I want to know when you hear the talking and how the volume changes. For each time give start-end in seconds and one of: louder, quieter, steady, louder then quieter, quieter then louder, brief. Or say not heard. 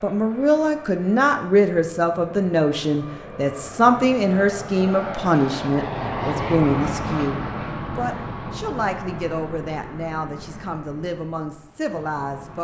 0.0-12.5 quieter.